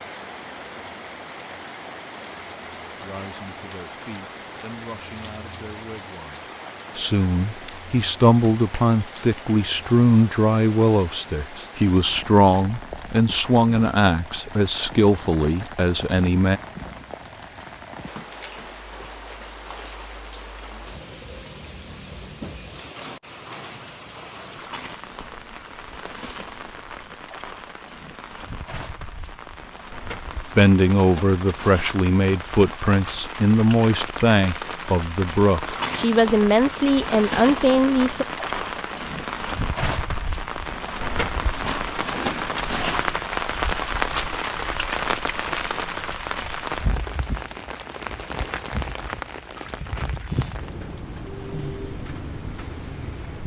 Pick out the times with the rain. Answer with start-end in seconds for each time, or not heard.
0.0-53.4.